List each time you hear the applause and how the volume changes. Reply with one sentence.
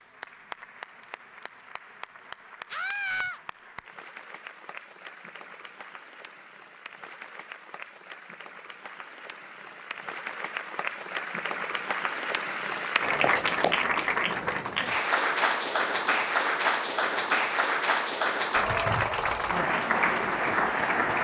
The applause can be heard from 0.0 to 21.1 s, getting louder.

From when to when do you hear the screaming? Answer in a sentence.
The screaming can be heard from 2.7 to 3.4 s.